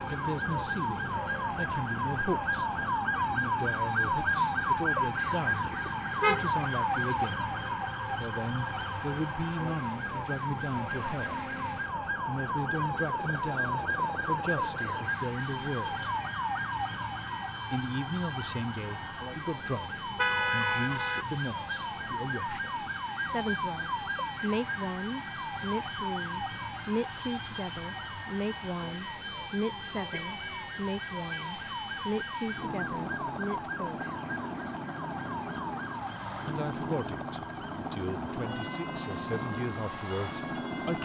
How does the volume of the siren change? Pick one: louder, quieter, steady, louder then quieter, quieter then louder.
quieter.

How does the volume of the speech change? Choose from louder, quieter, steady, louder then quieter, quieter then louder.
steady.